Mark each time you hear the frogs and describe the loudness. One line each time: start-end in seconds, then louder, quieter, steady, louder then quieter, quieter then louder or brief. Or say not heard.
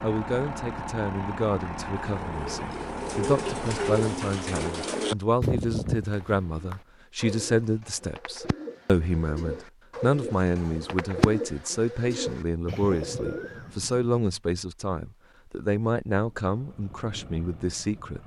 not heard.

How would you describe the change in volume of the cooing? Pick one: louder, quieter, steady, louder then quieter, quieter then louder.
quieter then louder.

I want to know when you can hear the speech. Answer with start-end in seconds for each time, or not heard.
0.0-18.2.